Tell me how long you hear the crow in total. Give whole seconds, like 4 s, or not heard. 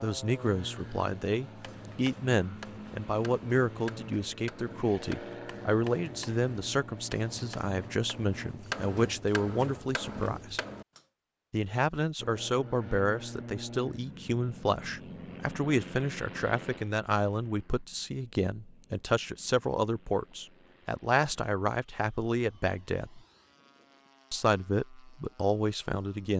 not heard.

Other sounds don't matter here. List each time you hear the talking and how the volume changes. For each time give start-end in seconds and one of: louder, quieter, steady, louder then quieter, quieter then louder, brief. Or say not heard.
0.0-10.6 steady
11.5-23.2 steady
24.3-26.3 brief.